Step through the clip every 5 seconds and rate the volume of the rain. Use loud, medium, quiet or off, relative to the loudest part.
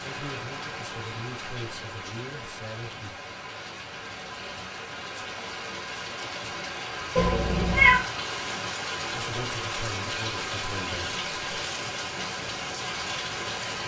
medium, loud, loud.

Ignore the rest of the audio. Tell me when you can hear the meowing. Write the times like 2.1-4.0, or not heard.
7.2-8.1.